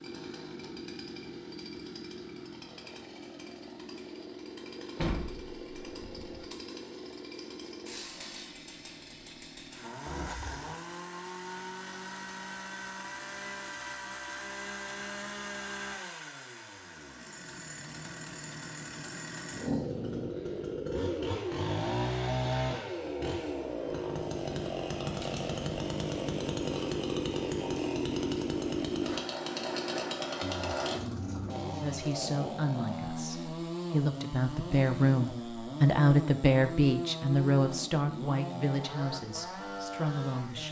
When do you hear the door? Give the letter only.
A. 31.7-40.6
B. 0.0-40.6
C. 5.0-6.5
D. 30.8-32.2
C.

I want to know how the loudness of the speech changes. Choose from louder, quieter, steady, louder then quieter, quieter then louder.
louder then quieter.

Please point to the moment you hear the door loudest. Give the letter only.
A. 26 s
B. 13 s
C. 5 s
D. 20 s
C.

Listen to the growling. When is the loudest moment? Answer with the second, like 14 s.
20 s.